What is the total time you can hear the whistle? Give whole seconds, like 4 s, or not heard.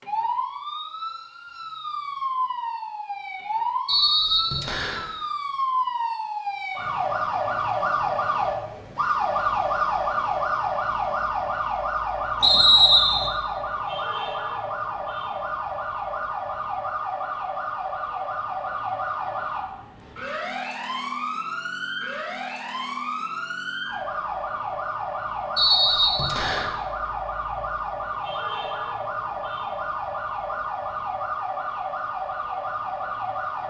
3 s.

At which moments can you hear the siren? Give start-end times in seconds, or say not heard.
0.0-33.6.